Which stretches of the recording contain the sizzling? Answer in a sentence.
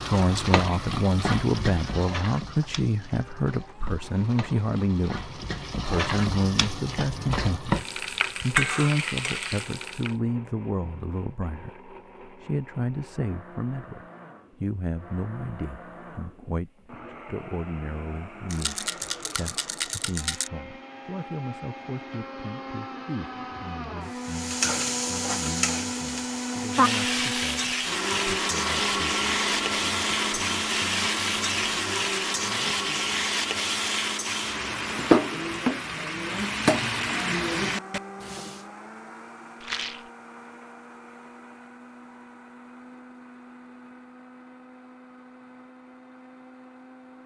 You can hear the sizzling from 0.0 to 10.2 s and from 24.2 to 38.6 s.